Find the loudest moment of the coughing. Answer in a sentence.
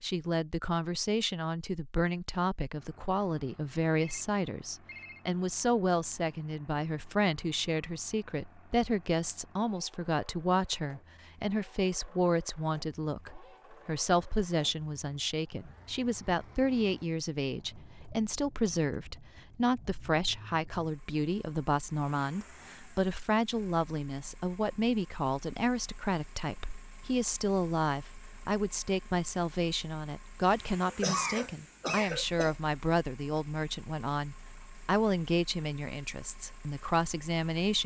The volume of the coughing peaks at 31 seconds.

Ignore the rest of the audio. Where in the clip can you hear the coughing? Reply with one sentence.
The coughing can be heard from 30.9 to 32.5 s.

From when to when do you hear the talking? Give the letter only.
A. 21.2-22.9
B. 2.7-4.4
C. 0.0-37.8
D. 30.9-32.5
C.